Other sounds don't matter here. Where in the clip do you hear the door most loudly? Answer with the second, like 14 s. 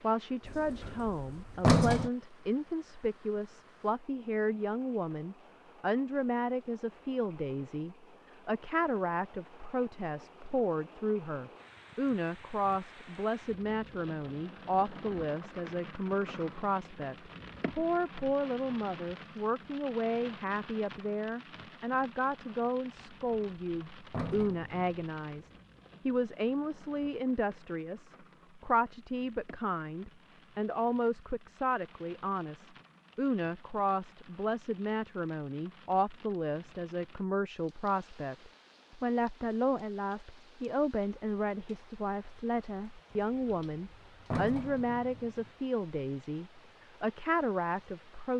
2 s.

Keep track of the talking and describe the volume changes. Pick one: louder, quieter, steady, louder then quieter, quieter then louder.
steady.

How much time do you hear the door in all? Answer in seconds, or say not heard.
6 s.